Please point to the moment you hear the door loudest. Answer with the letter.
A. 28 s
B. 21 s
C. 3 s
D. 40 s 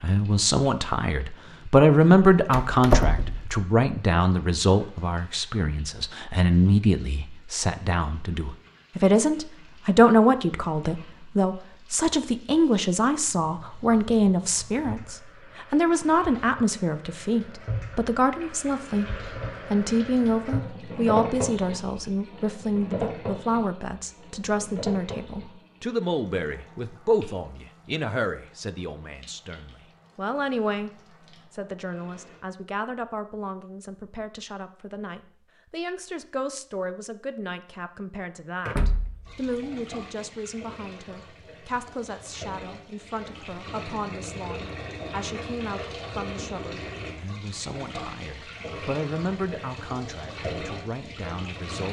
C.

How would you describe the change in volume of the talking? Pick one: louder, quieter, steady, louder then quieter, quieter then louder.
quieter.